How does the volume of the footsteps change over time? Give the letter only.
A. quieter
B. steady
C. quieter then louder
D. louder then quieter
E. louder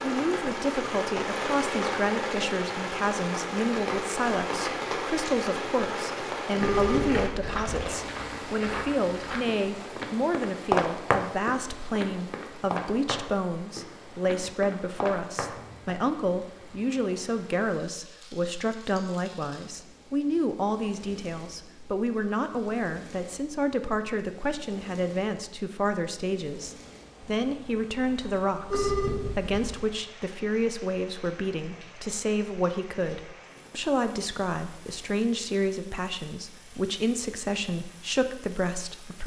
D.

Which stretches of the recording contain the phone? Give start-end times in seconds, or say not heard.
6.6-7.8, 28.7-29.8.